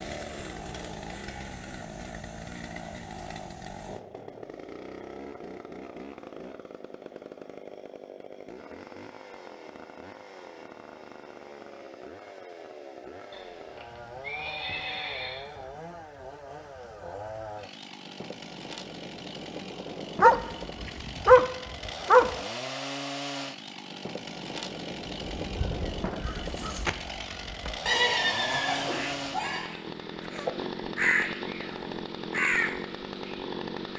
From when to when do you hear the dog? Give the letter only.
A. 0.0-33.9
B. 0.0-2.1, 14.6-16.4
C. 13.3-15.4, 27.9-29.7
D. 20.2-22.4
D.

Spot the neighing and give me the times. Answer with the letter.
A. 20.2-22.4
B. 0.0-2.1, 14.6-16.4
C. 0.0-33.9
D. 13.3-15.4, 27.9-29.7
D.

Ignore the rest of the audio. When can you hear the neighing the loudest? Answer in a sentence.
The loudest moment of the neighing is at 28 seconds.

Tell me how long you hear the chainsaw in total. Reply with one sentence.
You can hear the chainsaw for 34 seconds altogether.